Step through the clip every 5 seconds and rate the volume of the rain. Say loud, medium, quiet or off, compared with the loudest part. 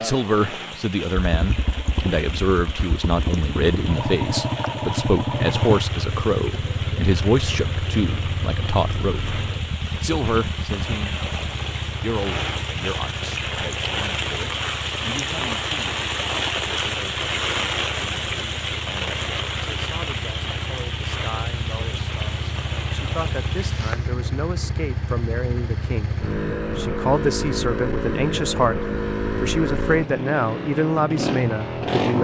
medium, medium, loud, loud, medium, off, off.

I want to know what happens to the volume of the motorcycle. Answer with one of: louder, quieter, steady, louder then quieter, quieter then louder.
quieter then louder.